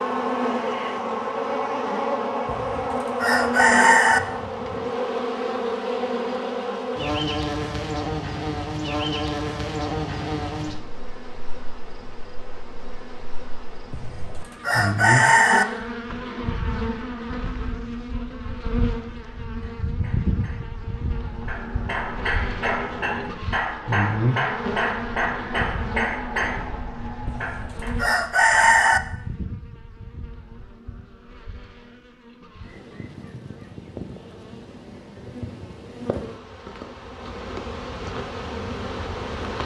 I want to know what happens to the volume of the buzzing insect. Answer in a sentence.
The loudness of the buzzing insect goes down.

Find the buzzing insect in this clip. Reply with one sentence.
You can hear the buzzing insect from 0.0 to 39.6 s.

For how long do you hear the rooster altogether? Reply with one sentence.
You can hear the rooster for 5 seconds altogether.